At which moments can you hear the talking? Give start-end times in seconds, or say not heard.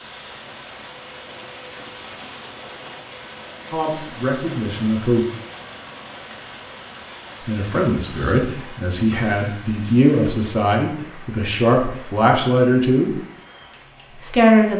3.7-5.2, 7.5-13.2, 14.2-14.7.